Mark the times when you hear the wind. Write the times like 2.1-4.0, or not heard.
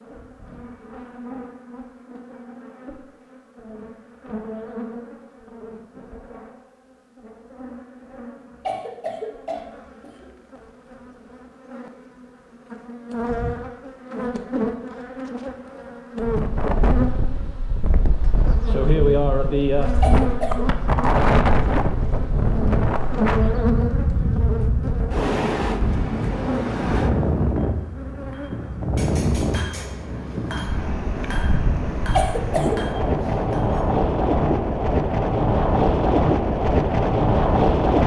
16.2-38.0.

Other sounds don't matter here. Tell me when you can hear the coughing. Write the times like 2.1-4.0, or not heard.
8.7-10.2, 20.0-20.6, 32.1-32.8.